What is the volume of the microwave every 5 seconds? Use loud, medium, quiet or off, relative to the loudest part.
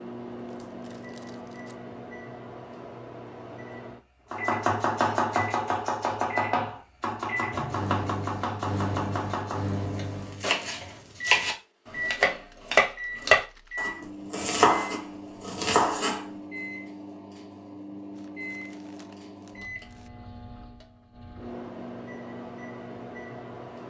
medium, loud, loud, medium, medium.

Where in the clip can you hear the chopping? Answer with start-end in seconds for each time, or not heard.
4.3-16.2.